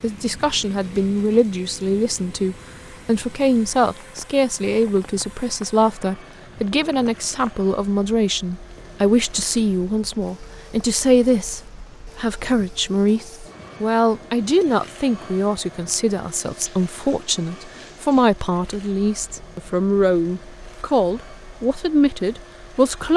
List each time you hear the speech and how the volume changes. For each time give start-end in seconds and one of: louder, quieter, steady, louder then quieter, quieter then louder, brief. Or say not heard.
0.0-23.1 steady.